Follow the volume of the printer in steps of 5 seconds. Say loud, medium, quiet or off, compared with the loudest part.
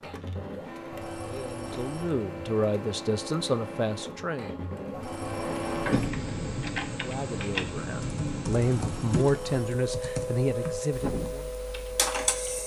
medium, loud, loud.